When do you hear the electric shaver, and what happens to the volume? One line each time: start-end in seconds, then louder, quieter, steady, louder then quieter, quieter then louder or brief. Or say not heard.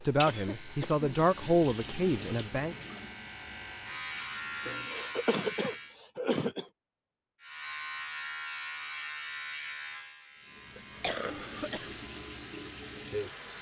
0.0-6.0 louder
7.4-13.3 quieter.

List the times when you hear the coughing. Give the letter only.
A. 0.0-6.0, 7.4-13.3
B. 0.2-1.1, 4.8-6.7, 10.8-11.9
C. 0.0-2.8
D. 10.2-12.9
B.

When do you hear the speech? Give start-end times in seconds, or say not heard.
0.0-2.8.